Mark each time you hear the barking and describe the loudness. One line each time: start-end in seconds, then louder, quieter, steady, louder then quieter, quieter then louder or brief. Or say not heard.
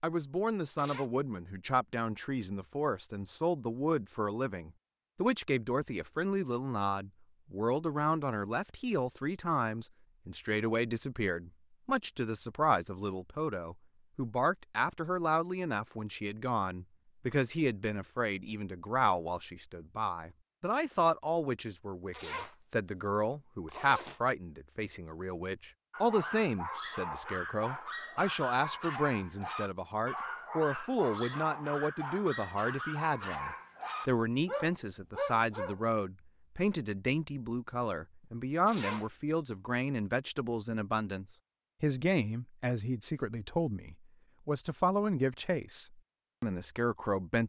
25.9-35.8 steady.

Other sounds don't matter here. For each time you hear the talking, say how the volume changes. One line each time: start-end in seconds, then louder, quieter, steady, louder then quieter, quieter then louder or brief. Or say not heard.
0.0-47.4 steady.